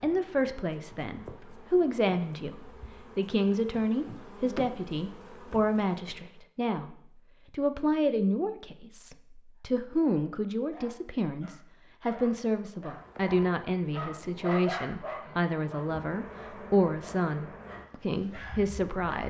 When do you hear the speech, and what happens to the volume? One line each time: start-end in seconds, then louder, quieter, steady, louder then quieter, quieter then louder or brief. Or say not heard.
0.0-19.2 steady.